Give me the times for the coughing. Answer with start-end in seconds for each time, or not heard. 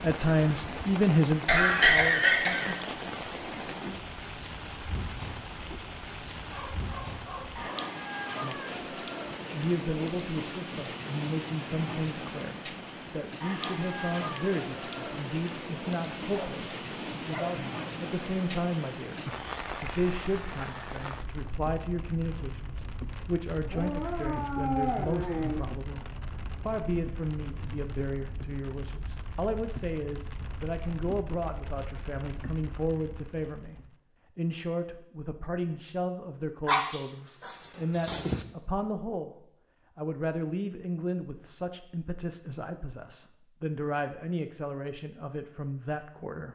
1.4-2.8.